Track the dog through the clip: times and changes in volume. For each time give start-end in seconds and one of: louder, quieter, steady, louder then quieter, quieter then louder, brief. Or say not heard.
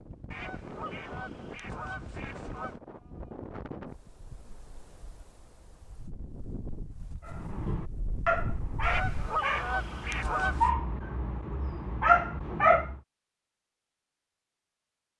7.2-13.0 quieter then louder.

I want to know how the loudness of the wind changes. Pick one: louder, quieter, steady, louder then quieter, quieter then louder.
quieter then louder.